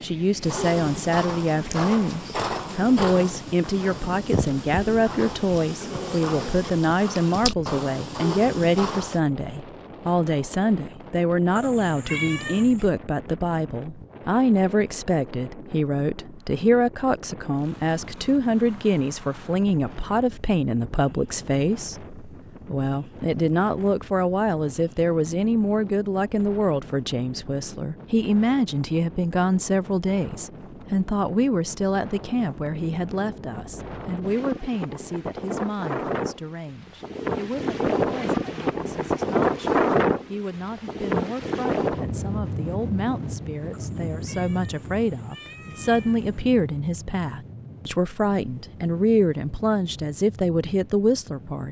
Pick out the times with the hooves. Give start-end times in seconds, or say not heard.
0.4-9.2.